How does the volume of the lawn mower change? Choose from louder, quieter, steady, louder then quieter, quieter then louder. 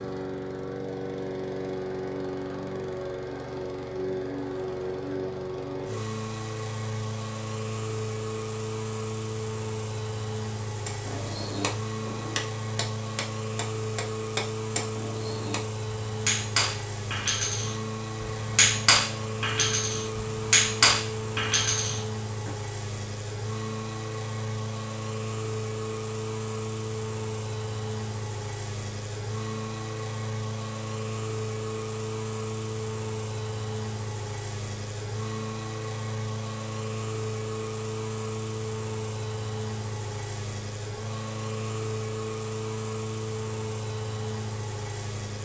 steady.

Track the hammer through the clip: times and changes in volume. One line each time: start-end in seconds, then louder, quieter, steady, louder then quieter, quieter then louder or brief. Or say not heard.
10.8-22.5 louder.